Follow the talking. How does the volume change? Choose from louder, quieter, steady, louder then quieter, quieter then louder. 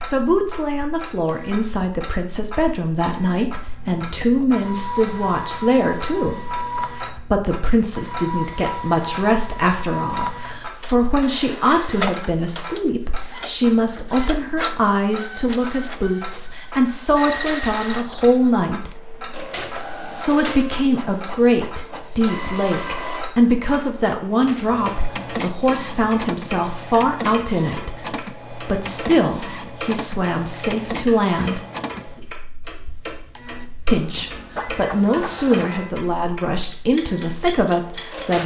steady.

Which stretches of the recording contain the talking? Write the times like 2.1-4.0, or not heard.
0.0-18.9, 20.1-31.6, 33.9-38.4.